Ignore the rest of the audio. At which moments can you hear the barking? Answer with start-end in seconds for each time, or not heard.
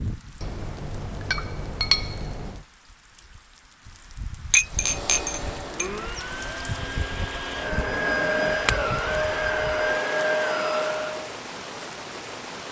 not heard.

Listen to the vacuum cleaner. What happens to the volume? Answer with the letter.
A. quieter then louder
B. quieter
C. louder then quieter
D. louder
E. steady
D.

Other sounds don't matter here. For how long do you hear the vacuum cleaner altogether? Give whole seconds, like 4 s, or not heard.
7 s.